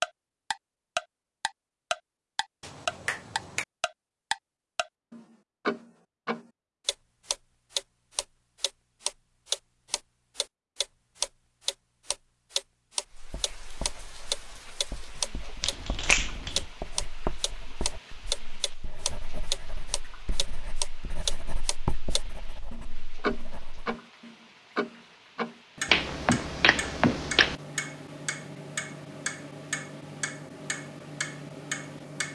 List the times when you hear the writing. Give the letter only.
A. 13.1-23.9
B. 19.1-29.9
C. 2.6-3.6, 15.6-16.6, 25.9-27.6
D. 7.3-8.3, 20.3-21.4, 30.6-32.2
A.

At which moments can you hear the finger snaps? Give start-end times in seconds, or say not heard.
2.6-3.6, 15.6-16.6, 25.9-27.6.